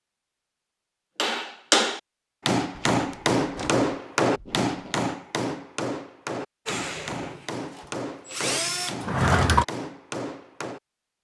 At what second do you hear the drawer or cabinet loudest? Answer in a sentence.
The loudest moment of the drawer or cabinet is at 9 seconds.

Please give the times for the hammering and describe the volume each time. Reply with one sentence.
You can hear the hammering from 1.1 to 10.8 s, getting quieter.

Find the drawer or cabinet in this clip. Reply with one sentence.
You can hear the drawer or cabinet from 2.8 to 3.9 s and from 9.0 to 9.7 s.